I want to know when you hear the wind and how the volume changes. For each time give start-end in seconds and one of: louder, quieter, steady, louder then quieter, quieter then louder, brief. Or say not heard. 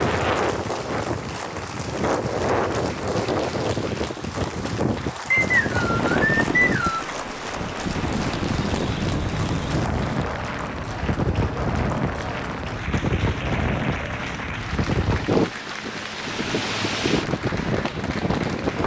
0.0-18.8 steady.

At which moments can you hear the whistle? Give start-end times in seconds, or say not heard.
5.3-7.1.